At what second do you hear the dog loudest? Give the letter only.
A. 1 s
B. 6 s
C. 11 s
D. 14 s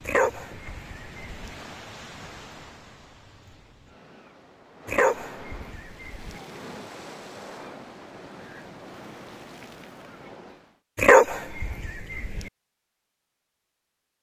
C.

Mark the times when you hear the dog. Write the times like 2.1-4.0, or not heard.
0.1-1.6, 4.8-6.3, 10.9-12.4.